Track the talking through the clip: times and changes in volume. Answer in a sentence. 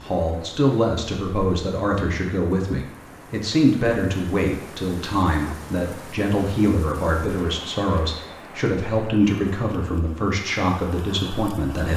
You can hear the talking from 0.0 to 11.9 s, at a steady volume.